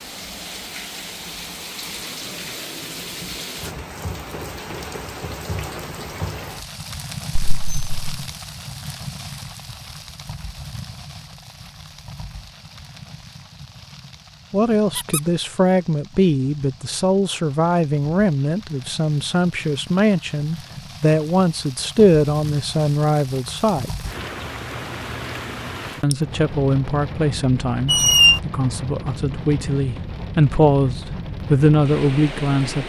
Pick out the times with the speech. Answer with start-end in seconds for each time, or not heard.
14.5-23.9, 26.0-32.8.